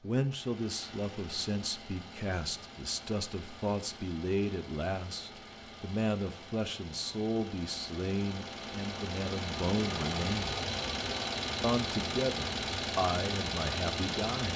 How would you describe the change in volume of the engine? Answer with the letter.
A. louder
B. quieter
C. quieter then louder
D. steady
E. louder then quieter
A.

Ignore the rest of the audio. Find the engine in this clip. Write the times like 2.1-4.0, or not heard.
0.0-14.5.